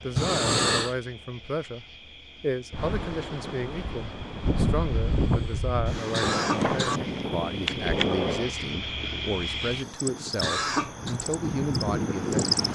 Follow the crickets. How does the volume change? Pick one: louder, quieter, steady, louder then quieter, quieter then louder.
louder then quieter.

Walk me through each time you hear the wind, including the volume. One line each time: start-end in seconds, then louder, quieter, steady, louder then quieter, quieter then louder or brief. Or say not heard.
2.7-12.7 quieter then louder.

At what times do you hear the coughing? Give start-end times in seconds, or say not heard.
0.1-0.9, 6.1-7.0, 10.4-11.2.